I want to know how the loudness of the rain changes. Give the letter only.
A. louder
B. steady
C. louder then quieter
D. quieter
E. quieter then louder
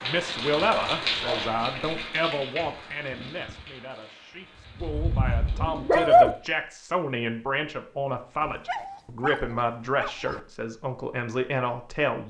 D.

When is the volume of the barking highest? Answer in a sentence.
The volume of the barking peaks at 6 seconds.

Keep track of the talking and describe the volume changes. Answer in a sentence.
The loudness of the talking goes down, then up.